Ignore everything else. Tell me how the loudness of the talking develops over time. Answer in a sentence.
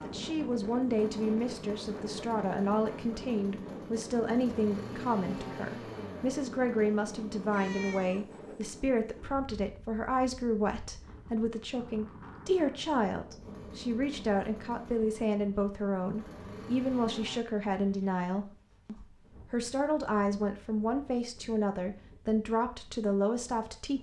The loudness of the talking stays about the same.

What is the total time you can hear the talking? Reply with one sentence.
You can hear the talking for 24 seconds altogether.